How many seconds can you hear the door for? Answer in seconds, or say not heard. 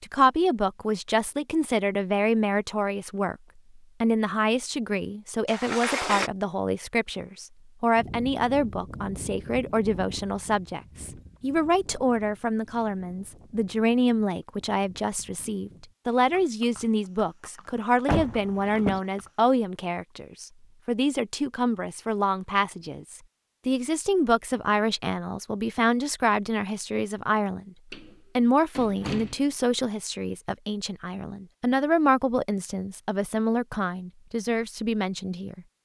3 s.